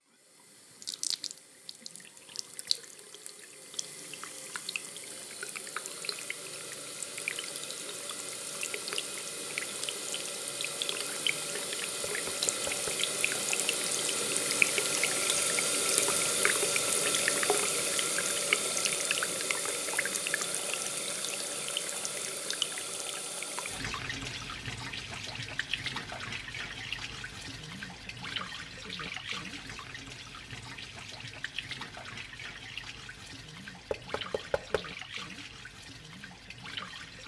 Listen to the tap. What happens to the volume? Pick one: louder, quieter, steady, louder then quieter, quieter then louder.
louder then quieter.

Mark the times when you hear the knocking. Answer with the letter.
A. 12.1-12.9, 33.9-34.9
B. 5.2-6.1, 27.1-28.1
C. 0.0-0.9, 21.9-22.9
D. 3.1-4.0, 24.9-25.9
A.